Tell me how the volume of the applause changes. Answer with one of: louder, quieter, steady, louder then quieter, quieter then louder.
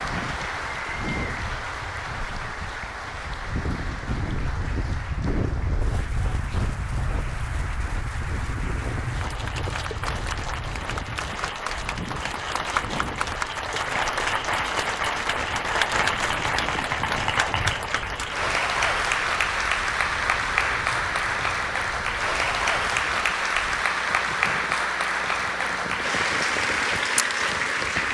louder.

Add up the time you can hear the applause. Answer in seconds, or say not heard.
28 s.